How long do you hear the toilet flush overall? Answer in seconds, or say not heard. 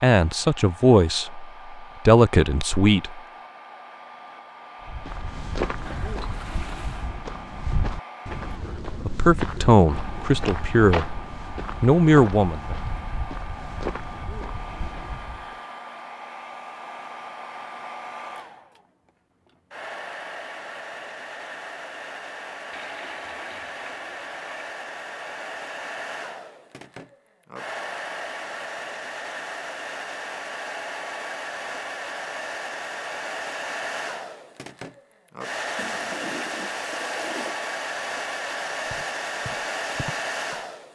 5 s.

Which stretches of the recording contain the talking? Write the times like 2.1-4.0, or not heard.
0.0-3.2, 8.8-11.2, 11.8-12.8.